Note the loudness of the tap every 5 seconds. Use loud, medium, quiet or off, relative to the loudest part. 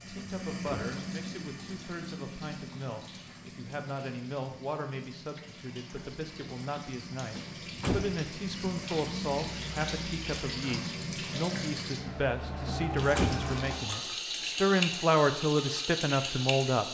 medium, medium, loud, loud.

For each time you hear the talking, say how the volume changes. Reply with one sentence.
You can hear the talking from 0.0 to 16.8 s, getting louder.